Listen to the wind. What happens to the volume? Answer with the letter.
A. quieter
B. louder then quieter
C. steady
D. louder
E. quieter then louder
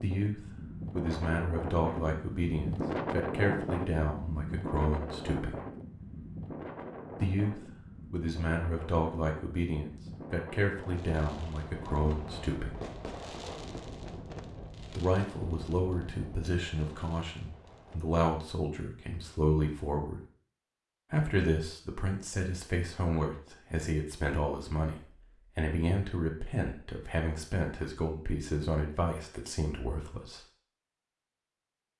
A.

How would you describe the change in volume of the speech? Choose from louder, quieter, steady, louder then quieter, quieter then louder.
steady.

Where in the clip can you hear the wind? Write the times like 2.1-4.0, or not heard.
0.0-16.5.